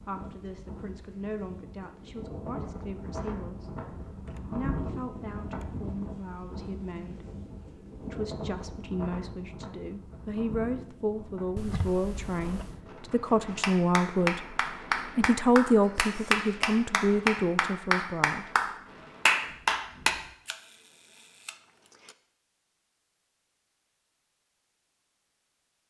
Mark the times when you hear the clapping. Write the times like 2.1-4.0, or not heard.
13.6-20.1.